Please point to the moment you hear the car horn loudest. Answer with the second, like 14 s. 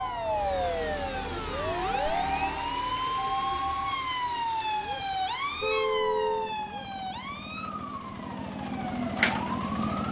6 s.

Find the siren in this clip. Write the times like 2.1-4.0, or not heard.
0.0-10.0.